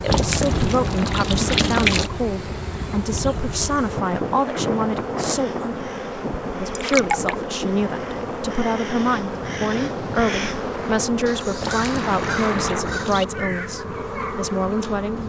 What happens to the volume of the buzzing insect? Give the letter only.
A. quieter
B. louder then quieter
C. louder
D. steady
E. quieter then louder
D.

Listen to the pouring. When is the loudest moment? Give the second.
2 s.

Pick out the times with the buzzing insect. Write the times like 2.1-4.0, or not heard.
0.0-15.2.